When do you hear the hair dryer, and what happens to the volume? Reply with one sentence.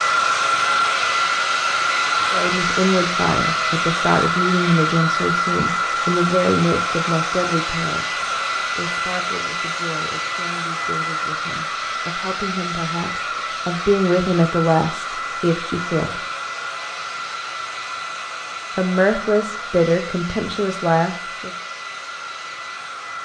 You can hear the hair dryer from 0.0 to 23.2 s, getting quieter.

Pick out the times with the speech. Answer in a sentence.
The speech can be heard from 2.3 to 8.1 s, from 8.8 to 16.2 s and from 18.8 to 21.5 s.